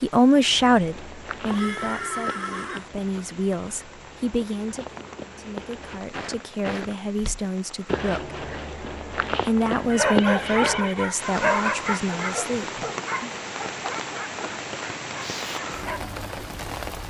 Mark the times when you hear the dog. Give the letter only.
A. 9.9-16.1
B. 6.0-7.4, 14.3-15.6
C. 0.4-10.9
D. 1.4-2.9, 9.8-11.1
A.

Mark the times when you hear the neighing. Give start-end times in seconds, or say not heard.
1.4-2.9, 9.8-11.1.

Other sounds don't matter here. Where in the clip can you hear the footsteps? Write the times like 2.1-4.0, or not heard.
0.4-10.9.